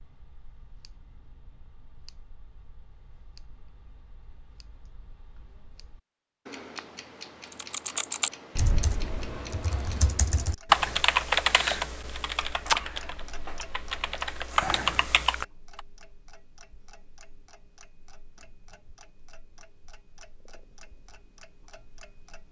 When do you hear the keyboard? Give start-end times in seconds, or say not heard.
7.5-15.8.